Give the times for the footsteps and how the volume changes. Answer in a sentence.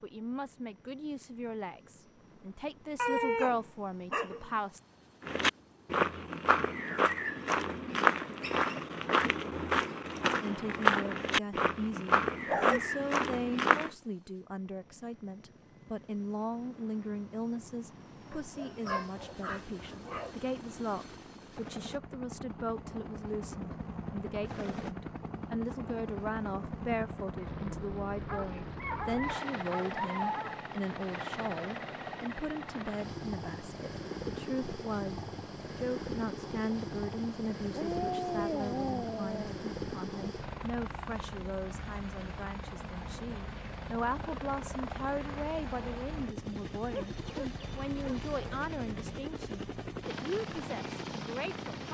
The footsteps can be heard from 5.2 to 13.9 s, at a steady volume.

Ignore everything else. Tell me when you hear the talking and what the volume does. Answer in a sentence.
You can hear the talking from 0.0 to 4.8 s, getting louder then quieter; and from 10.4 to 51.9 s, at a steady volume.